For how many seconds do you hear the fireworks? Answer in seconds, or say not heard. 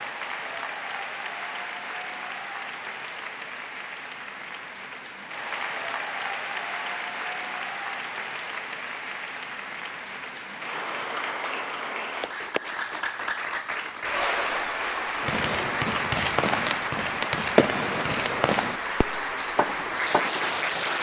5 s.